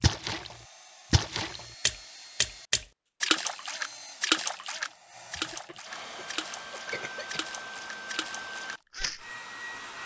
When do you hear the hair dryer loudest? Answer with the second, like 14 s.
8 s.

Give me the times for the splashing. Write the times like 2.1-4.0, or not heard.
0.0-9.2.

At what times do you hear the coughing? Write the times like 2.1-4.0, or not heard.
5.3-7.5.